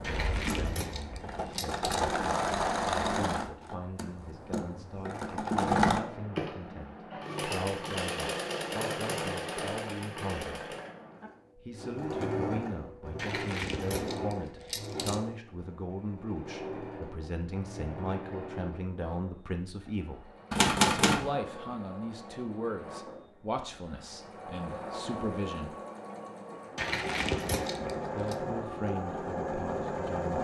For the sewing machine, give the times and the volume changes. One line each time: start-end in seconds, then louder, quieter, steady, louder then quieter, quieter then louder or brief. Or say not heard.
0.0-30.4 quieter then louder.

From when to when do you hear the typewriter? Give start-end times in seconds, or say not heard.
20.5-21.3.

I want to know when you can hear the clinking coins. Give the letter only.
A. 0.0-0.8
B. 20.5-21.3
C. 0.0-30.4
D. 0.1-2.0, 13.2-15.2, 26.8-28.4
D.